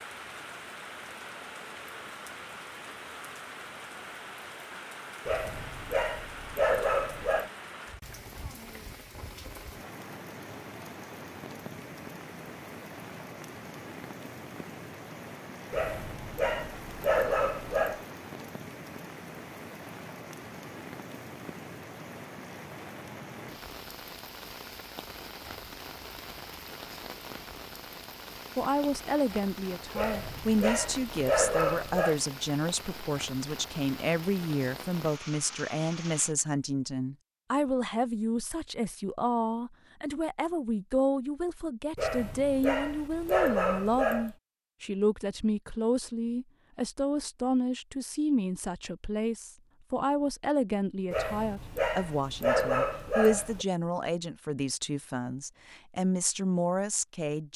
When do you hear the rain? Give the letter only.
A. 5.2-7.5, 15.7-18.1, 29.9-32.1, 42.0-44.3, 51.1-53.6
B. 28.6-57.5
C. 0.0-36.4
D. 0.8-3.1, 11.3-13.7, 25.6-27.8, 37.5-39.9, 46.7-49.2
C.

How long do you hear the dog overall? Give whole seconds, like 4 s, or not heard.
12 s.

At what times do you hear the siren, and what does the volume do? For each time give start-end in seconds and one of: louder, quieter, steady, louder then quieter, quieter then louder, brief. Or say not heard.
not heard.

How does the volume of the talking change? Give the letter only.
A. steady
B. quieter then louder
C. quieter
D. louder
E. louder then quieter
A.